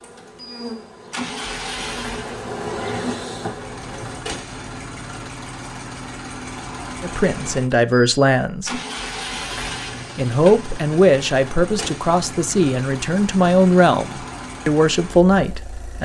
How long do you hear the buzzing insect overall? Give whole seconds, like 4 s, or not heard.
4 s.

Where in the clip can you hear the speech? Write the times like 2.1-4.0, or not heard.
7.0-8.8, 10.2-15.9.